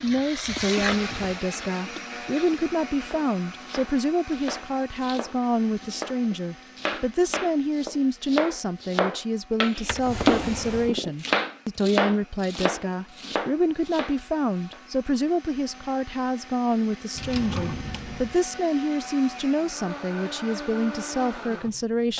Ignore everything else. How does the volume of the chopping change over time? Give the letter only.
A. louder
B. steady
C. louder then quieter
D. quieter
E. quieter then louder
C.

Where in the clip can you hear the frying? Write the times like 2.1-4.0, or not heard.
0.0-2.6.